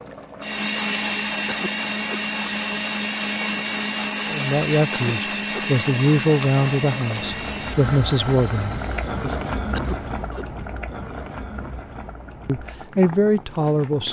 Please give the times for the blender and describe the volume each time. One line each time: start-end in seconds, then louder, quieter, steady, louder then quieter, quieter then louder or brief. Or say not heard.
0.4-9.2 quieter.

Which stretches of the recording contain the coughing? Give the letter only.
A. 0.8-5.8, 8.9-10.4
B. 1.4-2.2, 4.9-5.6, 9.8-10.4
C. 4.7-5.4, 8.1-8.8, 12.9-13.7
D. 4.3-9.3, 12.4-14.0
B.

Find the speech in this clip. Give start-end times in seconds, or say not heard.
4.3-9.3, 12.4-14.0.